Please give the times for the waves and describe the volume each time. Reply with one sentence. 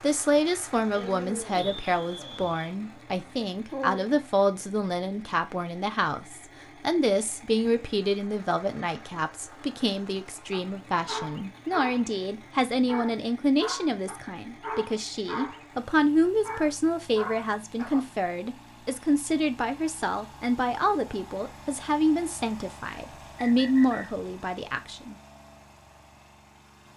The waves can't be heard in this clip.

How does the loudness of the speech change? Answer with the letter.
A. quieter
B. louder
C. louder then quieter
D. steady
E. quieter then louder
D.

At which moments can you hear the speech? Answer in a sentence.
The speech can be heard from 0.0 to 25.1 s.